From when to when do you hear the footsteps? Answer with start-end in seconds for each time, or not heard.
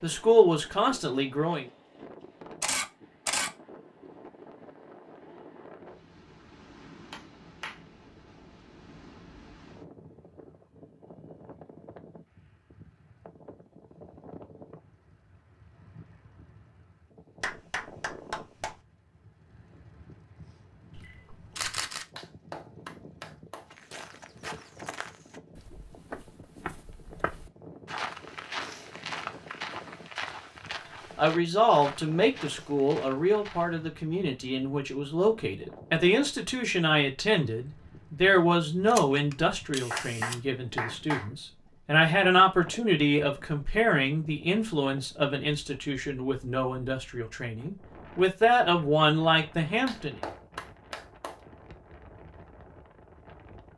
23.7-33.8.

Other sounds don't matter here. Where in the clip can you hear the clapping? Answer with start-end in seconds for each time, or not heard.
7.1-7.8, 17.4-18.8, 22.1-23.6, 39.9-41.2, 49.9-51.4.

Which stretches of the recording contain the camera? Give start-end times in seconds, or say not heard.
2.6-3.5, 20.9-22.1, 38.9-40.4.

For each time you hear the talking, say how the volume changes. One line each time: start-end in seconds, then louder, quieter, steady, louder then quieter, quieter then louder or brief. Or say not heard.
0.0-1.6 brief
31.1-50.2 steady.